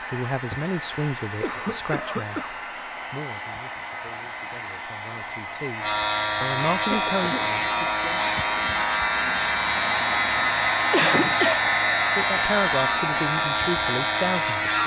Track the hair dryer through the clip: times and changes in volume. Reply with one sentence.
You can hear the hair dryer from 0.0 to 14.8 s, getting louder.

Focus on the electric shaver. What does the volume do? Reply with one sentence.
The loudness of the electric shaver goes up.